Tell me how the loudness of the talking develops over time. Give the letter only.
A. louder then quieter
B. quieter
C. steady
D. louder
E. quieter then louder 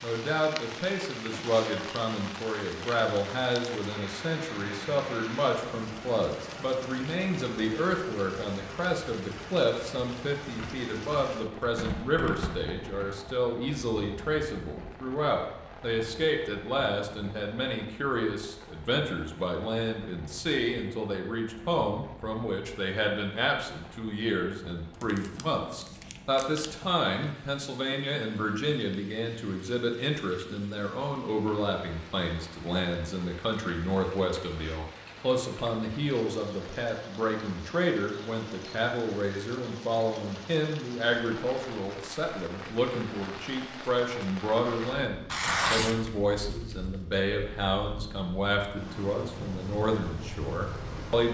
C.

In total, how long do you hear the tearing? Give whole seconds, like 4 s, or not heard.
6 s.